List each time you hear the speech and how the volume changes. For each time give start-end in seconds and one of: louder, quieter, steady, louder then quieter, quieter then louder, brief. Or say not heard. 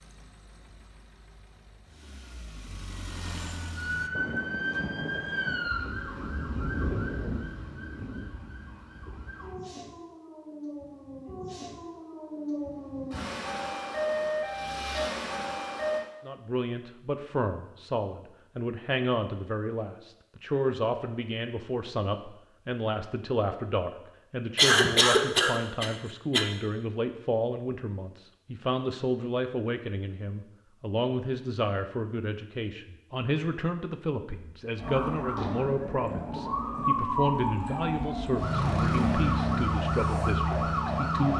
16.2-41.3 steady.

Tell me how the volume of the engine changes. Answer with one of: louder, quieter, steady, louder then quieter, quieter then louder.
louder.